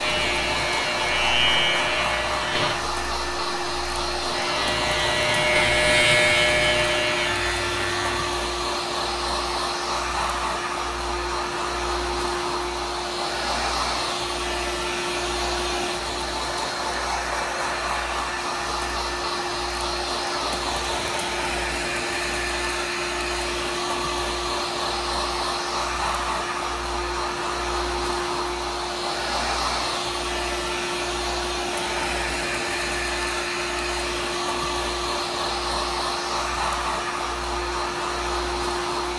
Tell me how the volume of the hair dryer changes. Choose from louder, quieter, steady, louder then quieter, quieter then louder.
steady.